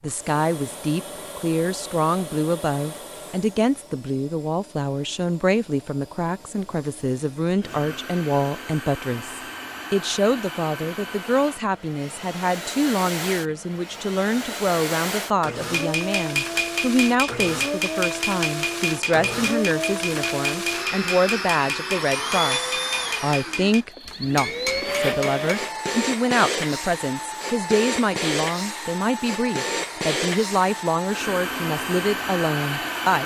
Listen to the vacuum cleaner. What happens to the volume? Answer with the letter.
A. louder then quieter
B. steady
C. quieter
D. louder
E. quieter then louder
D.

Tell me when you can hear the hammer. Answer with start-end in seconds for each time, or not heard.
15.7-25.7.